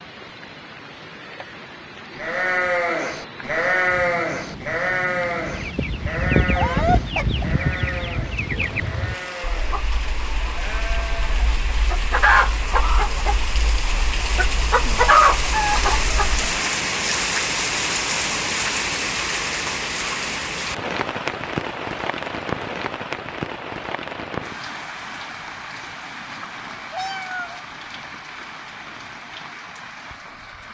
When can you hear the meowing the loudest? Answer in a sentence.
The volume of the meowing peaks at 7 seconds.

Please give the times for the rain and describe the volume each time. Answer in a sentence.
You can hear the rain from 0.0 to 30.7 s, getting louder then quieter.